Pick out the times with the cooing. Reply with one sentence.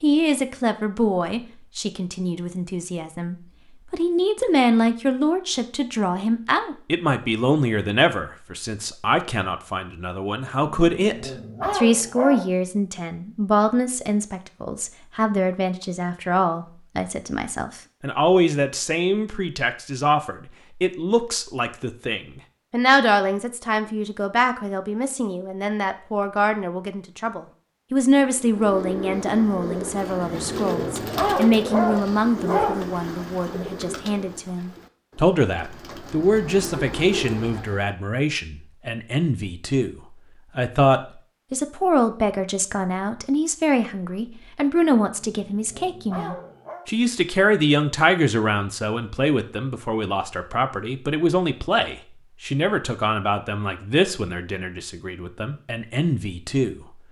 You can hear the cooing from 28.4 to 37.9 s.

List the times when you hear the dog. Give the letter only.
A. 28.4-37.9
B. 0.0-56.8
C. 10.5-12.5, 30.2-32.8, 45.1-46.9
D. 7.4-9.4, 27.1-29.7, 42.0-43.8
C.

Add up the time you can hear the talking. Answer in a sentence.
You can hear the talking for 57 seconds altogether.